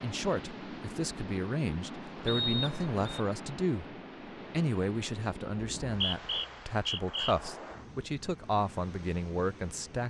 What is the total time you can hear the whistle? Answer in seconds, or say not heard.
3 s.